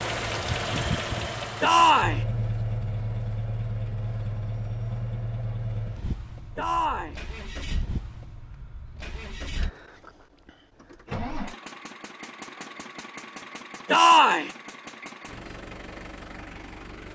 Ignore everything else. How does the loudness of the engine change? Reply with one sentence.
The volume of the engine goes down.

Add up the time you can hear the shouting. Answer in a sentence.
The shouting can be heard for 2 seconds in total.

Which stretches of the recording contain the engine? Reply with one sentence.
The engine can be heard from 0.0 to 17.1 s.